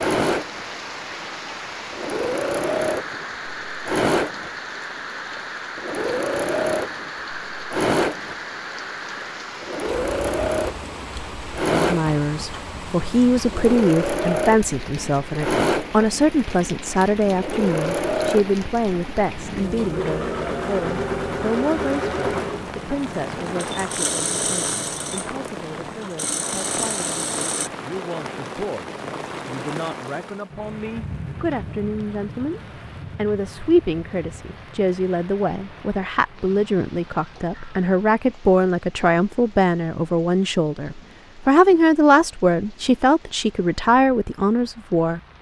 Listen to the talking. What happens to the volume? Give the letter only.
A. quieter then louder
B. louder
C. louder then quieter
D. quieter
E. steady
A.